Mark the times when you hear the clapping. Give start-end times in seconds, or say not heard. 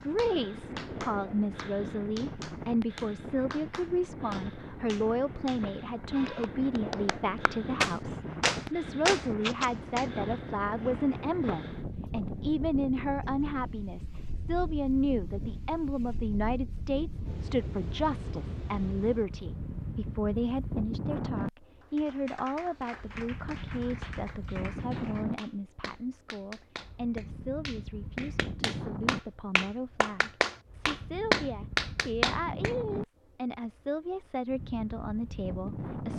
0.0-10.1, 21.8-32.8.